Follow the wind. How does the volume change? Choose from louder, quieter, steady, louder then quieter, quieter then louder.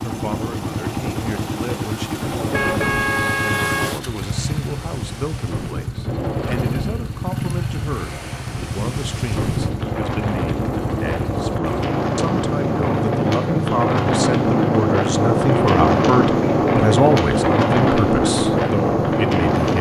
louder.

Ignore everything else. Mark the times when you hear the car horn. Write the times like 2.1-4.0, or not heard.
2.5-4.0.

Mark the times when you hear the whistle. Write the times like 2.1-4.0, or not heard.
not heard.